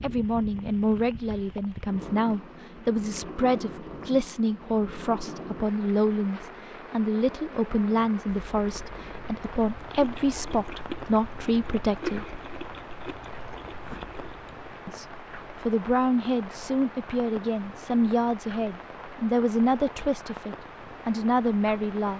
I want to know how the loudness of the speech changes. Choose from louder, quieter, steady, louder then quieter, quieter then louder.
steady.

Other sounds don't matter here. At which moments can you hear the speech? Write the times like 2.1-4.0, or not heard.
0.0-12.4, 14.8-22.1.